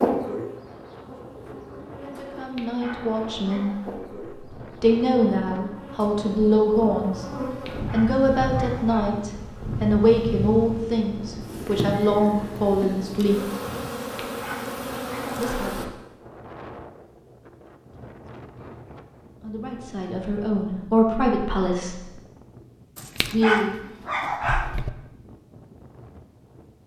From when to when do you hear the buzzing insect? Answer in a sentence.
You can hear the buzzing insect from 0.0 to 15.8 s.